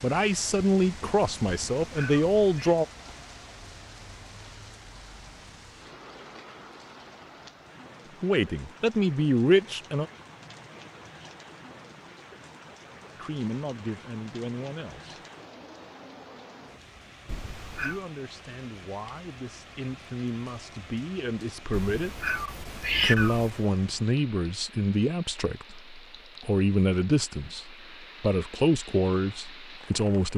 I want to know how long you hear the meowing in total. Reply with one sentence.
The meowing can be heard for 4 seconds in total.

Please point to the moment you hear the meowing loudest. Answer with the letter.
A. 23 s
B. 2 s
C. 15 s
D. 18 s
A.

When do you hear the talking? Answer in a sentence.
The talking can be heard from 0.0 to 2.9 s, from 8.2 to 10.1 s, from 13.2 to 15.2 s, from 17.8 to 22.2 s and from 23.0 to 30.3 s.